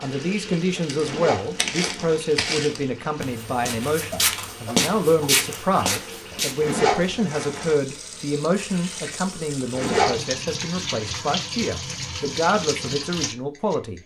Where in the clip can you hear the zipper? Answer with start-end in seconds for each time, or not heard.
1.0-2.2, 6.6-7.8, 9.7-10.2.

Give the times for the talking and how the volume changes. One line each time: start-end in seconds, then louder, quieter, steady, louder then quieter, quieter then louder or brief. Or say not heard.
0.0-14.0 steady.